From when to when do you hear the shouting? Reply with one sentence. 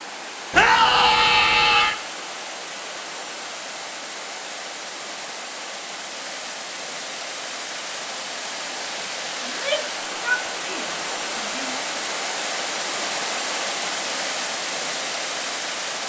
The shouting can be heard from 0.5 to 1.9 s and from 9.4 to 11.8 s.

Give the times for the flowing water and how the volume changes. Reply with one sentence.
The flowing water can be heard from 0.0 to 16.0 s, getting louder.